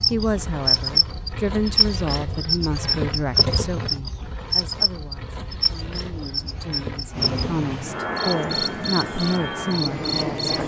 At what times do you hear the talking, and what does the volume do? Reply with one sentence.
You can hear the talking from 0.1 to 10.6 s, getting quieter then louder.